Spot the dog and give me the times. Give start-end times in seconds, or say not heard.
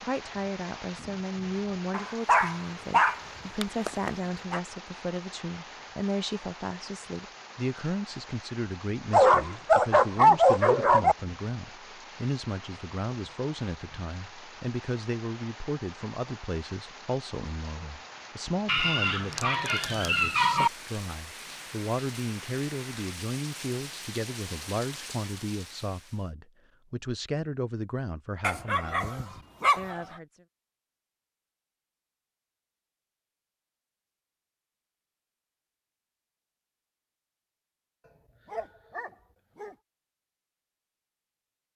1.9-4.6, 9.1-11.2, 18.6-20.7, 28.4-30.0, 38.5-39.8.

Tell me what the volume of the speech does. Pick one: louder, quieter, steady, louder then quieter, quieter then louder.
steady.